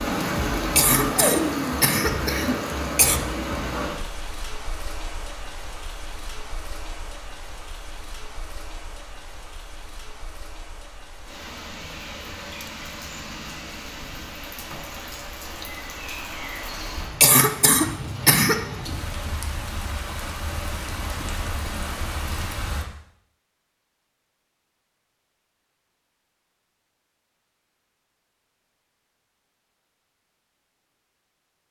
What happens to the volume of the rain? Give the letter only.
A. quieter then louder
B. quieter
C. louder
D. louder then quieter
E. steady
A.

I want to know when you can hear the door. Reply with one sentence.
You can't hear the door here.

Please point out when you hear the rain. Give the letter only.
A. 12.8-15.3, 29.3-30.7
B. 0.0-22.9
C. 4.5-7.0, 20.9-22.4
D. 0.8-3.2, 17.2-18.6
B.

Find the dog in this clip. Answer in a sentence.
The dog can't be heard in this clip.